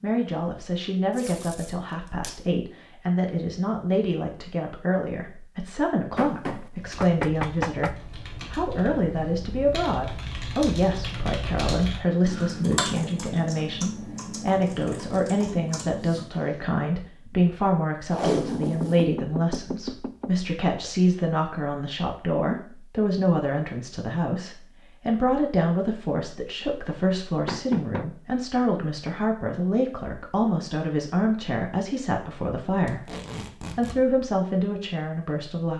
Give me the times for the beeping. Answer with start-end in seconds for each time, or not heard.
not heard.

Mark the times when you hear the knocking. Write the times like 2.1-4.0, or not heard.
6.2-8.0, 18.6-20.4, 27.4-28.1.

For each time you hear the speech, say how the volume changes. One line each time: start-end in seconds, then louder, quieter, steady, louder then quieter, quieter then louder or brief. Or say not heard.
0.0-35.7 steady.